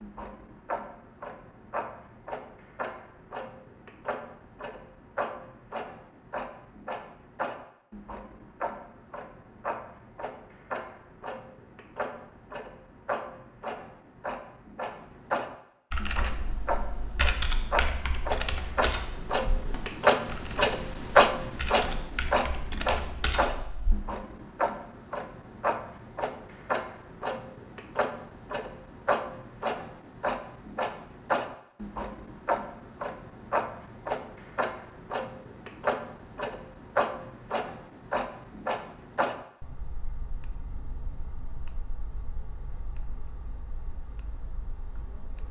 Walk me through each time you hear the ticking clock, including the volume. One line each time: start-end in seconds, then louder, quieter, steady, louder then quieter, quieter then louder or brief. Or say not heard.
0.0-45.4 louder then quieter.